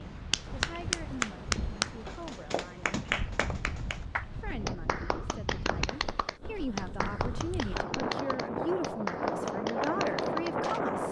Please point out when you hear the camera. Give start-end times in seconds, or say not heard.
not heard.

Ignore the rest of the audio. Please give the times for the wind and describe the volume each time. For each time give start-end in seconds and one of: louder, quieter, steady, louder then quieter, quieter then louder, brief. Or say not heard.
0.0-11.0 louder.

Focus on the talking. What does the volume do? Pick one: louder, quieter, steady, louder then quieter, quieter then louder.
louder.